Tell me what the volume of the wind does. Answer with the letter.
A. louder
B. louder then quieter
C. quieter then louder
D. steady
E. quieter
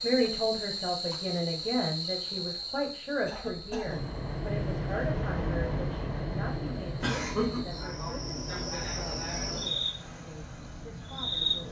E.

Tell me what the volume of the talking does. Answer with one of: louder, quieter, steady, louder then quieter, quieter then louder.
quieter.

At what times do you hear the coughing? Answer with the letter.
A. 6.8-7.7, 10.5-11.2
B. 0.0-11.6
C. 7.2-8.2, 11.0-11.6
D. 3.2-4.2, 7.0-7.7
D.